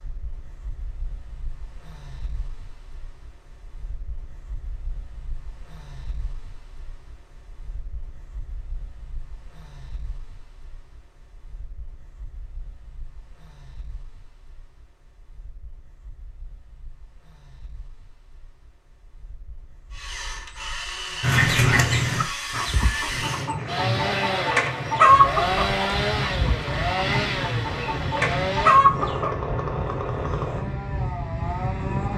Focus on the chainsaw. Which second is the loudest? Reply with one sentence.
The loudest moment of the chainsaw is at 26 seconds.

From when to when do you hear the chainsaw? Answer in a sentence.
You can hear the chainsaw from 19.9 to 32.1 s.